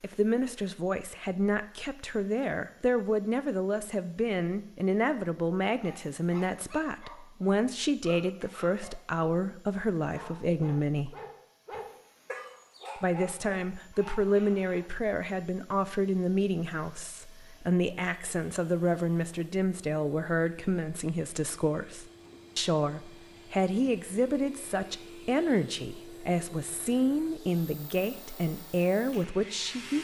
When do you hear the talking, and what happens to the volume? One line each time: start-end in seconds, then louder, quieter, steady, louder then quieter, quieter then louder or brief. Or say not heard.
0.0-11.2 steady
12.9-30.0 steady.